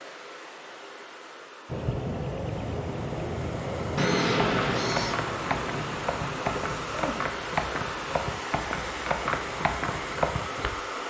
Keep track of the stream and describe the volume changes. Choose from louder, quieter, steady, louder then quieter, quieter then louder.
louder.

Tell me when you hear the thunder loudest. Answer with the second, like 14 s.
4 s.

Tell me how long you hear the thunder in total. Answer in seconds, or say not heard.
3 s.